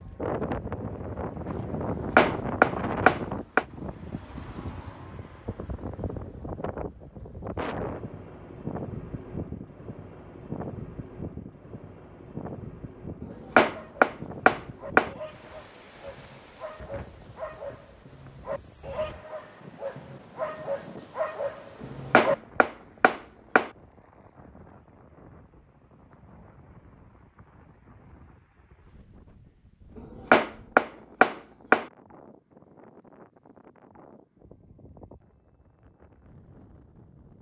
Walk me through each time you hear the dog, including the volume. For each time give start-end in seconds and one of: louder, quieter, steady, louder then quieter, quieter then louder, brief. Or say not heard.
13.2-22.4 louder.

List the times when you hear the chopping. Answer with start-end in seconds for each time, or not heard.
2.1-3.6, 13.6-15.1, 21.8-23.7, 30.3-31.9.